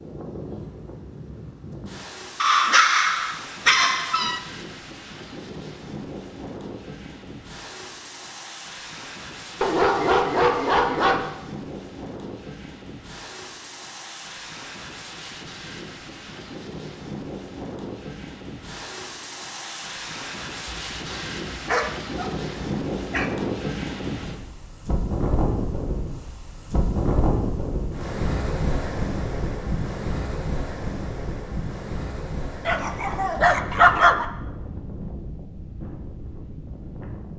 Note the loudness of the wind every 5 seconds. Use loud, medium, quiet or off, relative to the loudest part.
medium, medium, medium, medium, loud, loud, medium, medium.